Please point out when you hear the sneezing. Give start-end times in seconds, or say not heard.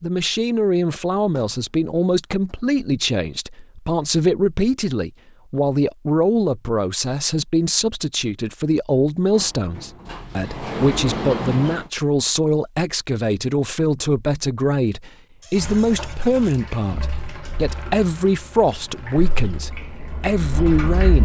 not heard.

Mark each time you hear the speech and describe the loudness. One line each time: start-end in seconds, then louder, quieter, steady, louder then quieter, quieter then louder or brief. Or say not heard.
0.0-21.2 steady.